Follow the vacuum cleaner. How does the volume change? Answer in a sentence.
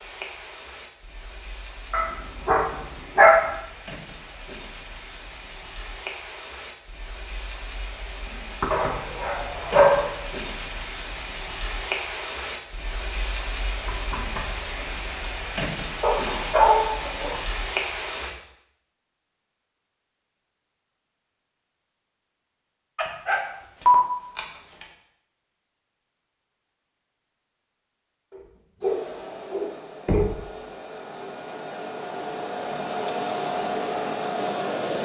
The loudness of the vacuum cleaner goes up.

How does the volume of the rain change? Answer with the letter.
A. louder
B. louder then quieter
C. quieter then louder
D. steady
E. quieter
A.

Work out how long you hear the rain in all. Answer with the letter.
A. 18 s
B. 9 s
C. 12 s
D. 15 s
A.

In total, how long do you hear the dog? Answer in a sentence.
You can hear the dog for 8 seconds altogether.